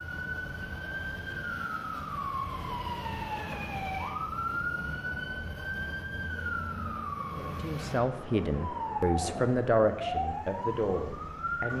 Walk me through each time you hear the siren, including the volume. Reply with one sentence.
The siren can be heard from 0.0 to 11.7 s, at a steady volume.